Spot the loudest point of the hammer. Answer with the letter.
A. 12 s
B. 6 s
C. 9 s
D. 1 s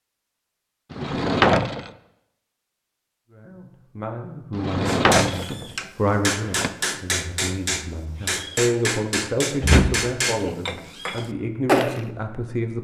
A.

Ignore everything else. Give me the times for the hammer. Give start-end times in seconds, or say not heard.
4.8-12.1.